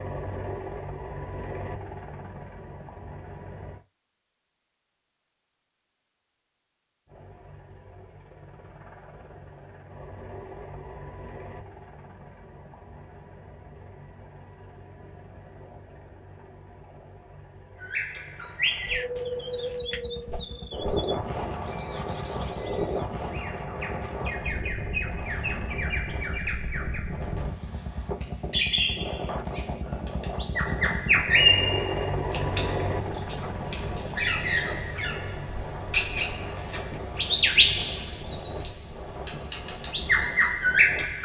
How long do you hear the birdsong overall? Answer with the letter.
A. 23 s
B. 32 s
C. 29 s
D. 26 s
A.